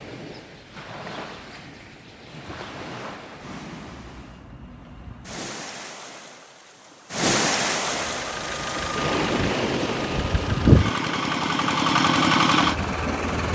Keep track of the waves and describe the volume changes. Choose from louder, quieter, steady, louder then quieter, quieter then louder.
louder then quieter.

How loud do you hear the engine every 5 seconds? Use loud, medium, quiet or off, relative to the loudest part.
off, medium, loud.